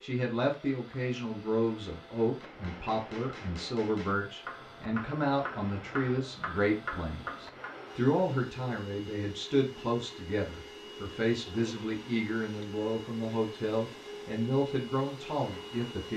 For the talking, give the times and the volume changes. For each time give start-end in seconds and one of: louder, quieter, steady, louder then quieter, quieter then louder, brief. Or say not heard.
0.0-16.1 steady.